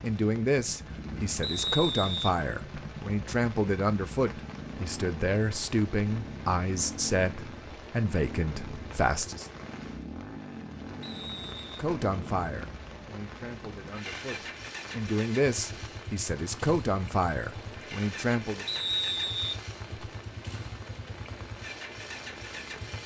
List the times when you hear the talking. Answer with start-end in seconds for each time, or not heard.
0.0-9.5, 11.8-18.6.